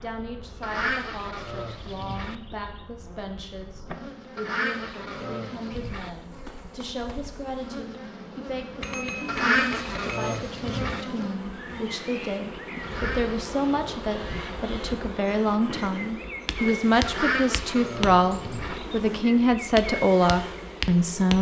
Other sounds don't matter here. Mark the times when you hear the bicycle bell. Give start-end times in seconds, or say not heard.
8.8-10.4.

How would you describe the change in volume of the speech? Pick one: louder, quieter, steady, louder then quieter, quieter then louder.
louder.